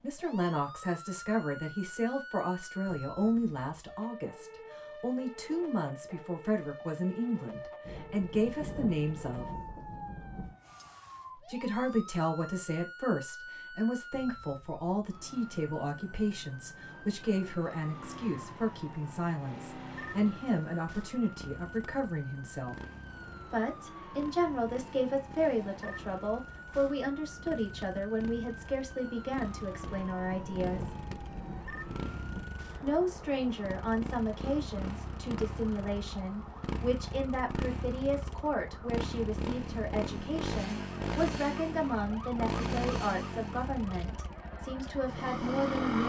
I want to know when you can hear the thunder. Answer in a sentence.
You can hear the thunder from 7.8 to 10.6 s and from 29.8 to 32.6 s.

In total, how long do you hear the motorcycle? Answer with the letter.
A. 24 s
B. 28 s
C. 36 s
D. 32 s
B.